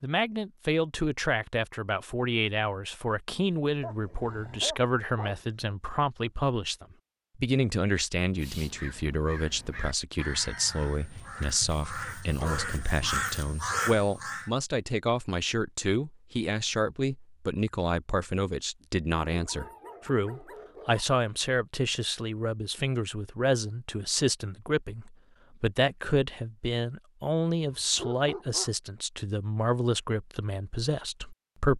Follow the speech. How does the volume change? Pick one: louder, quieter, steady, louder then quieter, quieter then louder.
steady.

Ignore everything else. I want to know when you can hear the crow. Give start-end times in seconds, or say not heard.
8.2-14.5.